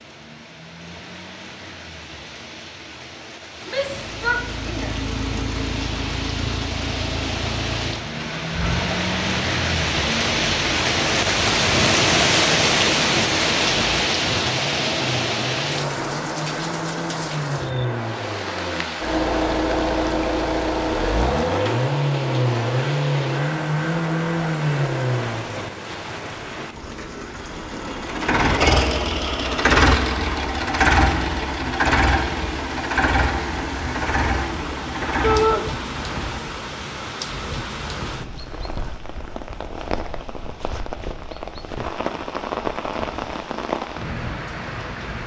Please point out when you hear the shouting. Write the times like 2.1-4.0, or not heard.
3.6-5.0, 35.2-35.6.